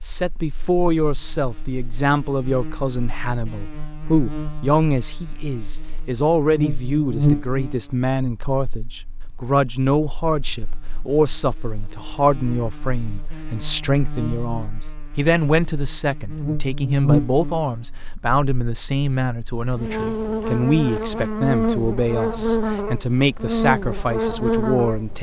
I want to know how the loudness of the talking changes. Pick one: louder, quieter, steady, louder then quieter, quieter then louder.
steady.